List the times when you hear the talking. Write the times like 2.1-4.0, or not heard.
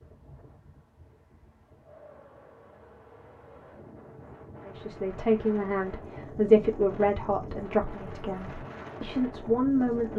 4.7-10.1.